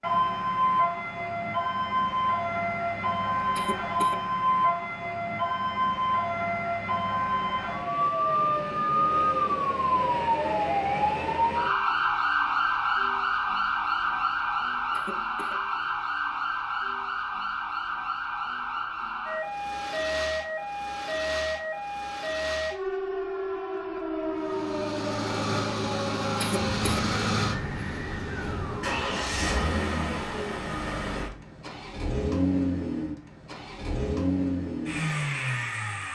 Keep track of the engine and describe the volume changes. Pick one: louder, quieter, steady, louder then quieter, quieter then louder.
steady.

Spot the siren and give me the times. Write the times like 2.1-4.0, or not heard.
0.0-29.2.